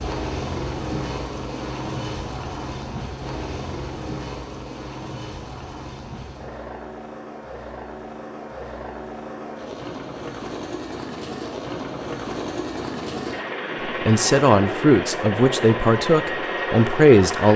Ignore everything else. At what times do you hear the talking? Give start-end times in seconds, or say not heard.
13.8-17.5.